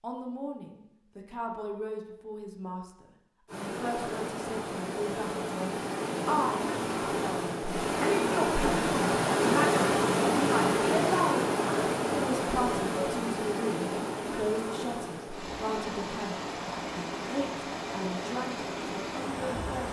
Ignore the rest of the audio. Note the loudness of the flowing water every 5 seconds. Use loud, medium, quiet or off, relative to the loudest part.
medium, loud, loud, medium.